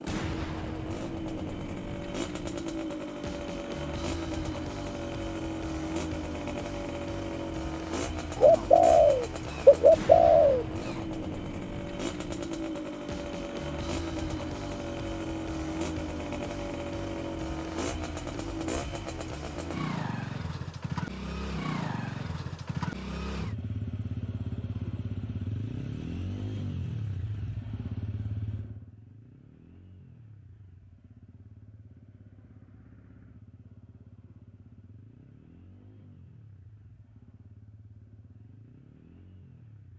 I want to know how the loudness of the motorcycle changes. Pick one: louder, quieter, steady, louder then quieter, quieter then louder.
quieter.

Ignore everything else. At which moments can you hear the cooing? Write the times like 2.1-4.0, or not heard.
8.3-10.7.